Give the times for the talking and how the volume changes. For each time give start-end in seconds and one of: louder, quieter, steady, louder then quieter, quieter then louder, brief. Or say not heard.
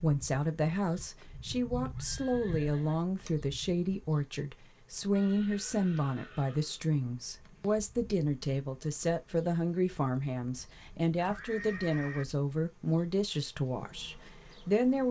0.0-15.0 steady.